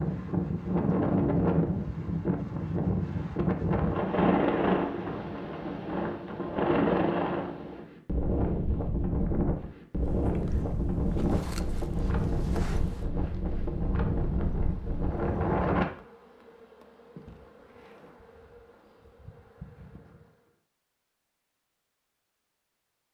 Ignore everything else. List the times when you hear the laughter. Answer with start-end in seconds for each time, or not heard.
not heard.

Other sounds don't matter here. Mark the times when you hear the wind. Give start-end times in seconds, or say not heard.
0.0-15.8.